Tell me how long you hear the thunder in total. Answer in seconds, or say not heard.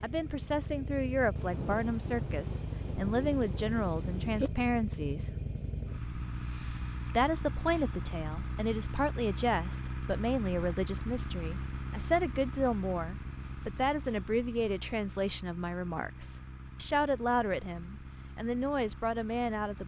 3 s.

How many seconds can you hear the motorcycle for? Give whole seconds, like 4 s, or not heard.
20 s.